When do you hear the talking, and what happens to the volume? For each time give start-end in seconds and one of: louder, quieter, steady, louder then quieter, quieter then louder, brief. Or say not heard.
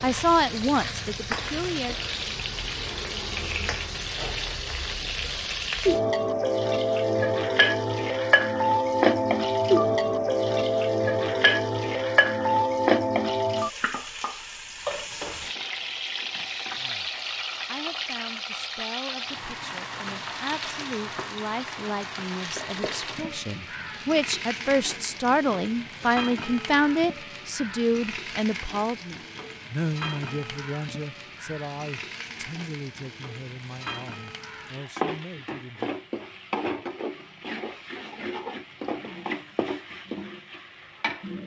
0.0-1.9 brief
16.8-35.9 louder then quieter.